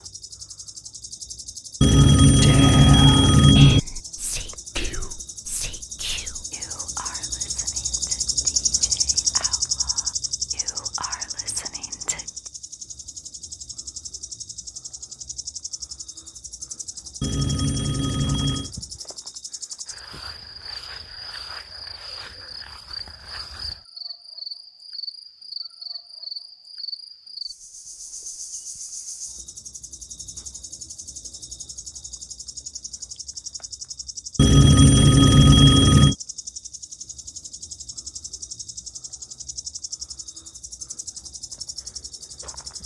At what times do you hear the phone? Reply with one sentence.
The phone can be heard from 1.8 to 3.8 s, from 17.2 to 18.7 s and from 34.4 to 36.1 s.